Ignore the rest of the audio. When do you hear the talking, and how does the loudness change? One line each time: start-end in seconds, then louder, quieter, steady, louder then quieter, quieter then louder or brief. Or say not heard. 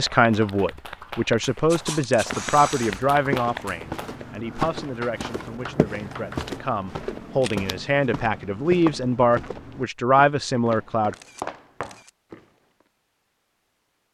0.0-11.2 quieter then louder.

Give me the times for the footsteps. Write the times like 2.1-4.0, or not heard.
1.9-12.4.